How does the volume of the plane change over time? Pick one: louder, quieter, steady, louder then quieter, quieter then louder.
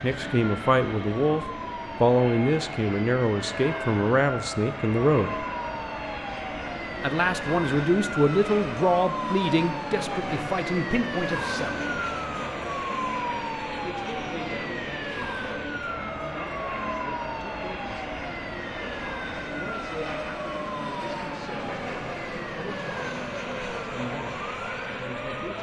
steady.